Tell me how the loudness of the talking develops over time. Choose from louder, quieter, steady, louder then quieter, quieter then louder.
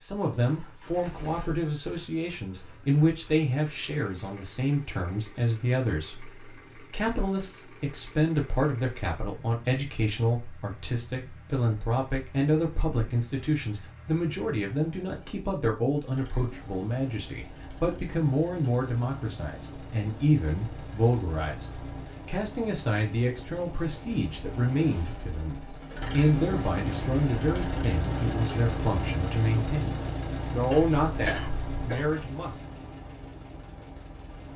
steady.